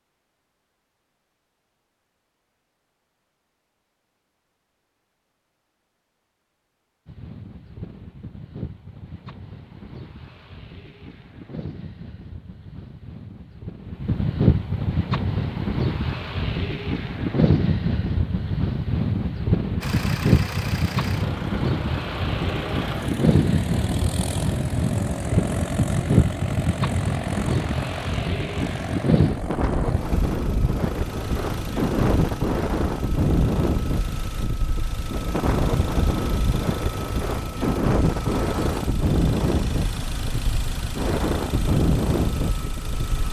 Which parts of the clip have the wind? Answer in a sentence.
You can hear the wind from 7.0 to 43.2 s.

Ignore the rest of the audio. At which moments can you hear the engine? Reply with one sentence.
The engine can be heard from 19.8 to 43.2 s.